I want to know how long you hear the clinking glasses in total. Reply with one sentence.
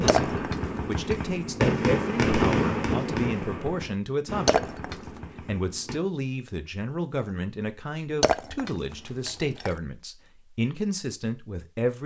The clinking glasses can be heard for 3 seconds in total.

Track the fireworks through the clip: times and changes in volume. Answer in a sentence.
The fireworks can be heard from 0.0 to 6.0 s, getting louder then quieter.